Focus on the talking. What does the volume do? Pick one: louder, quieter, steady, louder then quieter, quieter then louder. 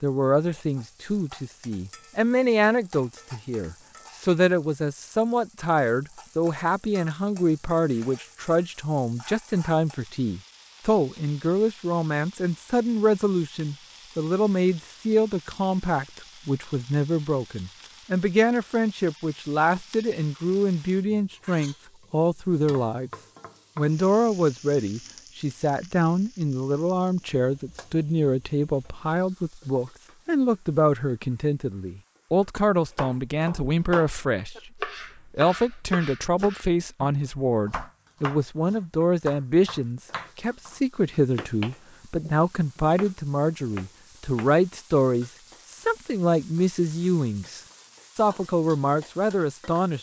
steady.